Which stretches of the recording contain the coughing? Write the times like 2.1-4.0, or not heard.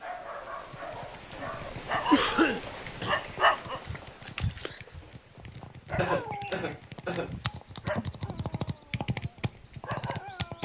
2.1-3.1, 6.0-7.3.